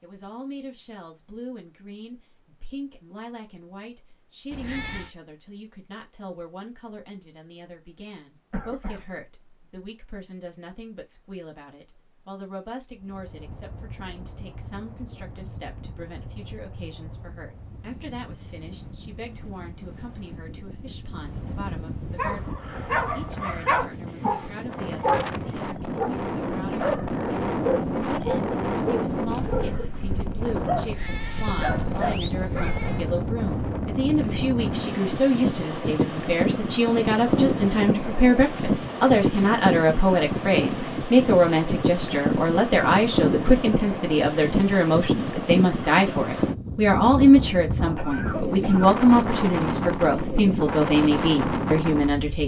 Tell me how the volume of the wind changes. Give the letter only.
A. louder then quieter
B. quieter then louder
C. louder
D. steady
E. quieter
C.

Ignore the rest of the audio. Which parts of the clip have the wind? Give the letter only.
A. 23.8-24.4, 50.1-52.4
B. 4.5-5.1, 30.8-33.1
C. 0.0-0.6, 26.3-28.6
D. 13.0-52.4
D.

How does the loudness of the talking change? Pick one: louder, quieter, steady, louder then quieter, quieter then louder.
louder.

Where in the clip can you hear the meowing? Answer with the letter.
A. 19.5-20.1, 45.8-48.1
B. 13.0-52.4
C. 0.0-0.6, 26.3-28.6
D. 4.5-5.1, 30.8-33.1
D.